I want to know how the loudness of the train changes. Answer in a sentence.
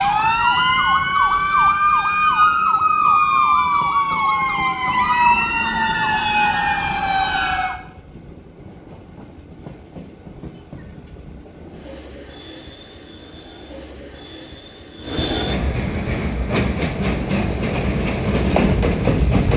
The volume of the train goes up.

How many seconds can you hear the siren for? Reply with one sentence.
The siren can be heard for 8 seconds in total.